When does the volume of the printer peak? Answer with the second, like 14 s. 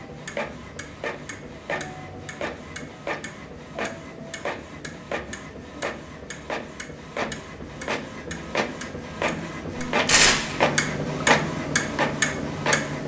11 s.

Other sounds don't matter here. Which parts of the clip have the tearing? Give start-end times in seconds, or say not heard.
10.1-10.6.